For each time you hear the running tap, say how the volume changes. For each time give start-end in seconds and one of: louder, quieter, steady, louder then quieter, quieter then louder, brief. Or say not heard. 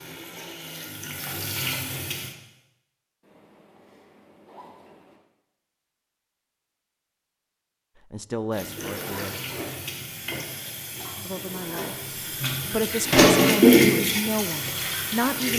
0.0-2.4 brief
8.5-15.5 louder then quieter.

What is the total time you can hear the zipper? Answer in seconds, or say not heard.
3 s.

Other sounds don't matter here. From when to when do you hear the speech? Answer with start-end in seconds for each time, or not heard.
8.1-9.4, 11.2-11.9, 12.7-15.5.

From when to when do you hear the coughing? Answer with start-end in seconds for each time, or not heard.
not heard.